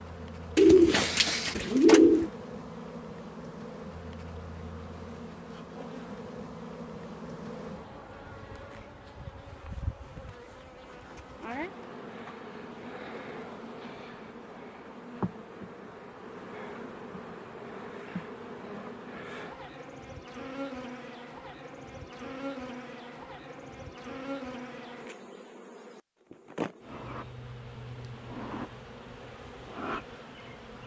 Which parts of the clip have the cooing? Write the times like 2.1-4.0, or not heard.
0.6-2.3.